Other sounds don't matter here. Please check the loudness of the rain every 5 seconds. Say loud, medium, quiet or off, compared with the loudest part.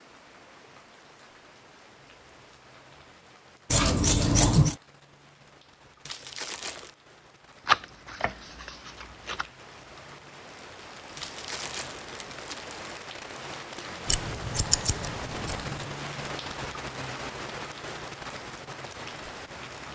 quiet, quiet, loud, loud.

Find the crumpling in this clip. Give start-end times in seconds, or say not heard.
6.0-7.0, 11.2-12.8.